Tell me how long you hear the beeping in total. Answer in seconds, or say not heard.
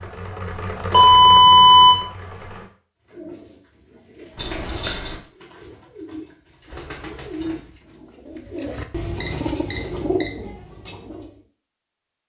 3 s.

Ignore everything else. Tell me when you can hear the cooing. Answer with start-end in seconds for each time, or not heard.
3.0-11.4.